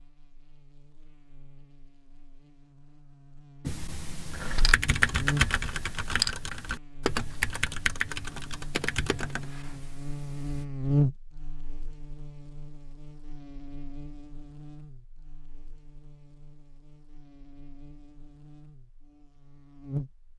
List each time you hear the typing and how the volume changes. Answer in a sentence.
You can hear the typing from 3.6 to 10.7 s, getting quieter.